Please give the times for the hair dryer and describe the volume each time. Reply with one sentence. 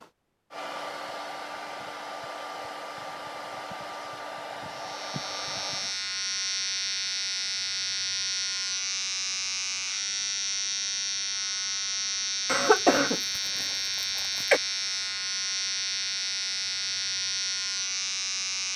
You can hear the hair dryer from 0.0 to 6.0 s, at a steady volume.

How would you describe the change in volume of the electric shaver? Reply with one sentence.
The loudness of the electric shaver stays about the same.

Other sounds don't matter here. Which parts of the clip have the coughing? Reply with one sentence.
You can hear the coughing from 12.4 to 14.6 s.